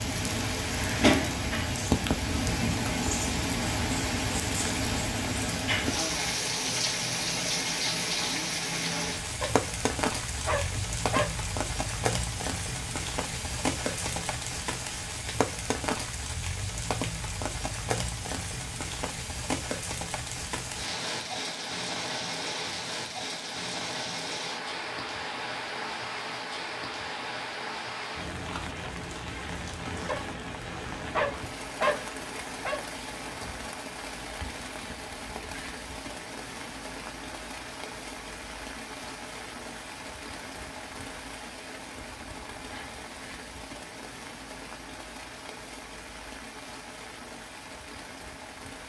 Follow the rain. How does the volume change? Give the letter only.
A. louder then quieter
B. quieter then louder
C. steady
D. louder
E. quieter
E.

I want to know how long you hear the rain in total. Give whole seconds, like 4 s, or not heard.
49 s.